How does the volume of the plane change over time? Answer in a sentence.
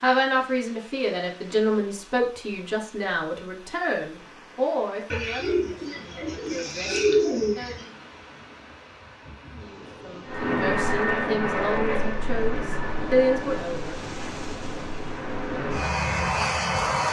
The volume of the plane goes down, then up.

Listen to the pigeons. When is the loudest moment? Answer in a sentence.
The loudest moment of the pigeons is at 7 seconds.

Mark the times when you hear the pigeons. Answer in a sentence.
You can hear the pigeons from 5.1 to 7.9 s.